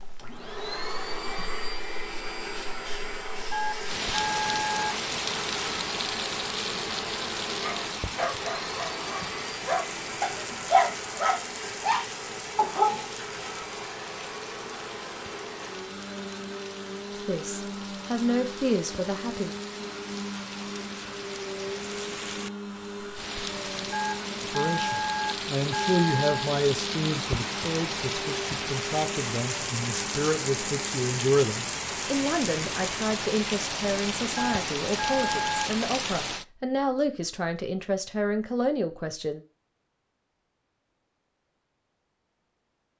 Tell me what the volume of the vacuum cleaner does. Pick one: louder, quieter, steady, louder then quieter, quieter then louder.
steady.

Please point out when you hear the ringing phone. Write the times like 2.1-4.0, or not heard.
3.5-5.0, 23.9-26.5, 34.4-35.7.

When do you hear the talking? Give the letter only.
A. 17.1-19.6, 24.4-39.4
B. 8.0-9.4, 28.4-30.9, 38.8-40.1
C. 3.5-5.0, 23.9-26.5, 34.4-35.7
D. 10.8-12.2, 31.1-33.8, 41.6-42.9
A.